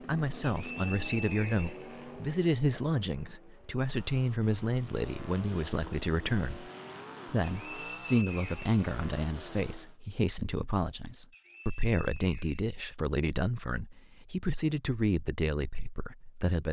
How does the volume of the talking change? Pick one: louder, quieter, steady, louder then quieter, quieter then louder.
steady.